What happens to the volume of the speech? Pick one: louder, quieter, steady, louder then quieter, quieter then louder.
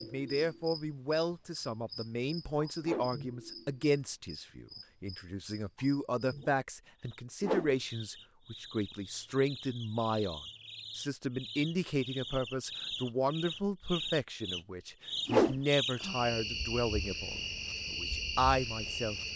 steady.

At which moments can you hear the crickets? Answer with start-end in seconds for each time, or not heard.
0.0-19.3.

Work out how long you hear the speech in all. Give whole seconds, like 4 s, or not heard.
19 s.